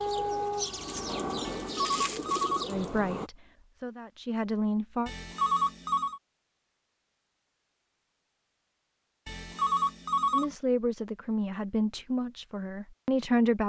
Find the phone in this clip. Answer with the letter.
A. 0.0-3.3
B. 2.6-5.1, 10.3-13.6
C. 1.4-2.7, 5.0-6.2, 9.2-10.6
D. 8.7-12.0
C.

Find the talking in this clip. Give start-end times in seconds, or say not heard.
2.6-5.1, 10.3-13.6.